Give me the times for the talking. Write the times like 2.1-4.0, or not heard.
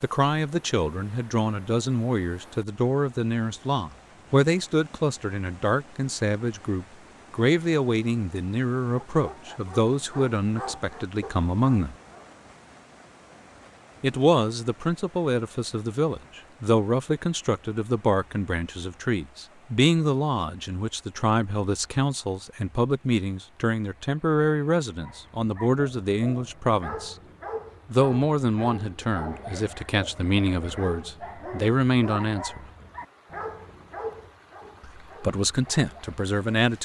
0.0-11.9, 14.0-27.1, 27.9-32.6, 34.8-36.8.